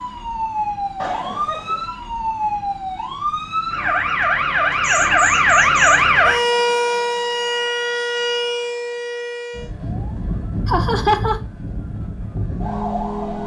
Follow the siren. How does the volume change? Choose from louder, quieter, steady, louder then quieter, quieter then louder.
louder then quieter.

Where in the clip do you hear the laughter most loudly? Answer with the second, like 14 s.
11 s.